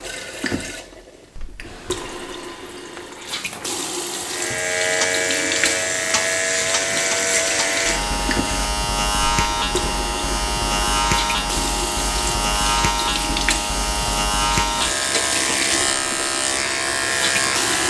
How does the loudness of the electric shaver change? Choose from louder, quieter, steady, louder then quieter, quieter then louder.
steady.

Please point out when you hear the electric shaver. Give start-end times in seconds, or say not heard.
4.2-17.8.